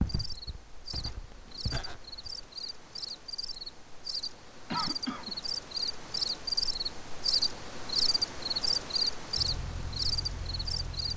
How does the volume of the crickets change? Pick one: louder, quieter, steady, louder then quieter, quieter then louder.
louder.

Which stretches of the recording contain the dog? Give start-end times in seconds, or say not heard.
not heard.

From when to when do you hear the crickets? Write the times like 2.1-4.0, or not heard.
0.0-11.1.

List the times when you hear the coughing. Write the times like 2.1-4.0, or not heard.
4.7-5.4.